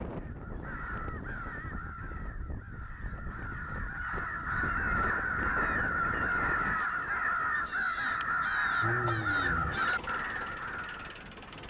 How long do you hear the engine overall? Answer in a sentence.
You can hear the engine for 3 seconds altogether.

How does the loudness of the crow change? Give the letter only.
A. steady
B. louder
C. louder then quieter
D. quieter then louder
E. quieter
B.